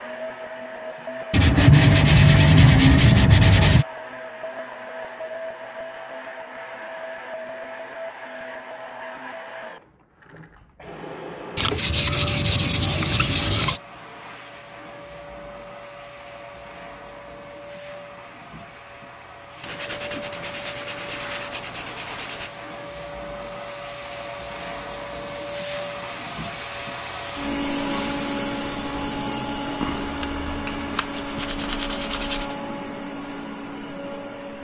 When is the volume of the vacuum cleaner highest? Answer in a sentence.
The volume of the vacuum cleaner peaks at 28 seconds.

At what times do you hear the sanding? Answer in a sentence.
You can hear the sanding from 1.3 to 3.9 s, from 11.6 to 13.8 s, from 19.6 to 22.5 s and from 29.8 to 32.5 s.